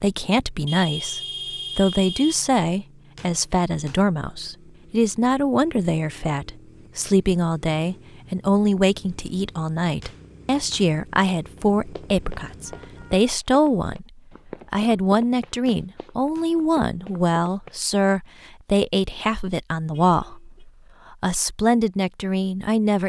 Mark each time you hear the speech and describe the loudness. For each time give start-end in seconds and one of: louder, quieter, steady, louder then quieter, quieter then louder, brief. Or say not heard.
0.0-14.1 steady
14.7-23.0 steady.